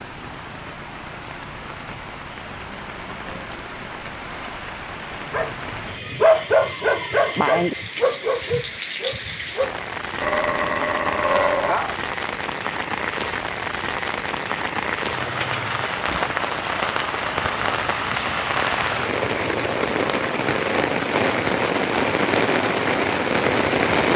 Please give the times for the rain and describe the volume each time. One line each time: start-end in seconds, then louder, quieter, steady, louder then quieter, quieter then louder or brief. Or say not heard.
0.0-24.1 louder.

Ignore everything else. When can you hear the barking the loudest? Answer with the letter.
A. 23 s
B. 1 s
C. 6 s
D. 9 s
C.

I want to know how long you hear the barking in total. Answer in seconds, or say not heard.
7 s.